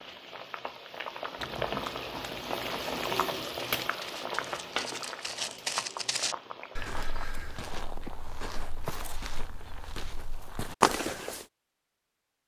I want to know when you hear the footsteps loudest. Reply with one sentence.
The volume of the footsteps peaks at 11 seconds.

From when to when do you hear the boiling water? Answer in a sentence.
The boiling water can be heard from 0.0 to 7.2 s.